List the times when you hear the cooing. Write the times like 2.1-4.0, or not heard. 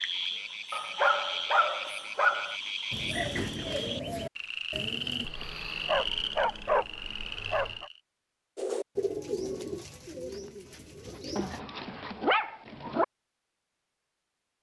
2.9-5.3, 8.6-11.6.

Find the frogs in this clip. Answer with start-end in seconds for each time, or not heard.
0.0-8.0.